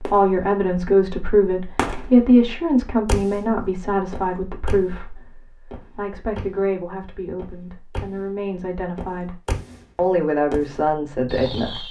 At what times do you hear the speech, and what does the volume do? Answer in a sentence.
You can hear the speech from 0.0 to 11.8 s, getting quieter then louder.